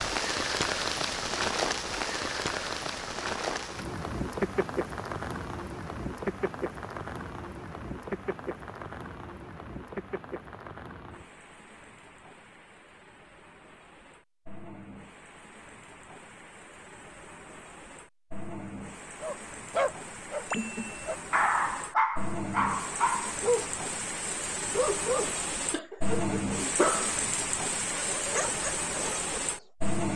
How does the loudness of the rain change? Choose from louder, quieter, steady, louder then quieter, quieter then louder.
quieter then louder.